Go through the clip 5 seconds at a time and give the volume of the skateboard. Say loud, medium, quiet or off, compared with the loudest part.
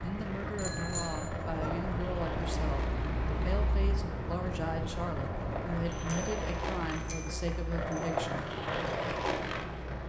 medium, loud.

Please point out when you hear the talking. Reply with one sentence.
You can hear the talking from 0.0 to 8.6 s.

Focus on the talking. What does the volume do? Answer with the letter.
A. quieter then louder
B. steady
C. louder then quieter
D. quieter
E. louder
B.